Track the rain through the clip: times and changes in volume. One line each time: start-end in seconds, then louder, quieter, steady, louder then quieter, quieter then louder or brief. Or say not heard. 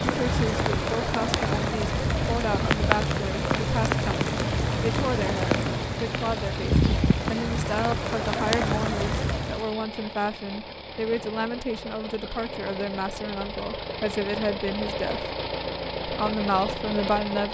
0.0-9.8 steady.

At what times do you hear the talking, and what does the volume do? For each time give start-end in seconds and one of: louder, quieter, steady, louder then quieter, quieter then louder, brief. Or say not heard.
0.1-15.2 steady
16.1-17.4 brief.